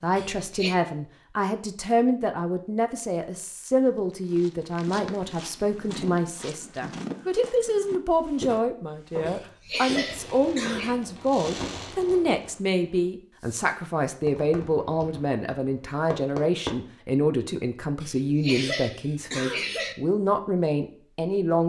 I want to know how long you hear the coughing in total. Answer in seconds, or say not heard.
4 s.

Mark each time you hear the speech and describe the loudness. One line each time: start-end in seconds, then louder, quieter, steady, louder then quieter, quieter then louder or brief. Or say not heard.
0.0-21.6 steady.